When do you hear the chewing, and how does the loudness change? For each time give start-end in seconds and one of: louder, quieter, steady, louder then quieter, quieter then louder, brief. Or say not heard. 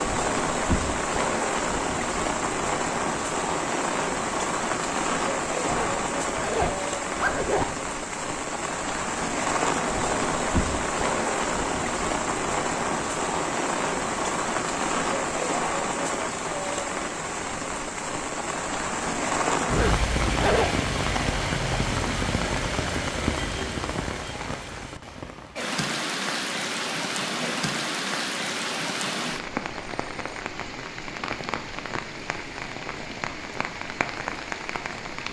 not heard.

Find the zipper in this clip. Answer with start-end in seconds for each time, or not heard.
5.7-7.7, 19.6-20.7.